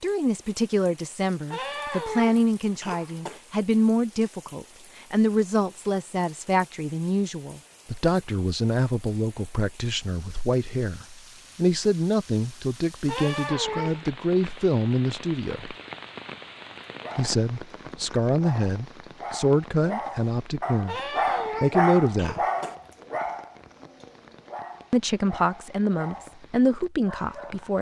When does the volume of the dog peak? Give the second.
22 s.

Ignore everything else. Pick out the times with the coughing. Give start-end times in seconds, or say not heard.
1.5-3.4, 13.1-14.1, 20.9-22.8.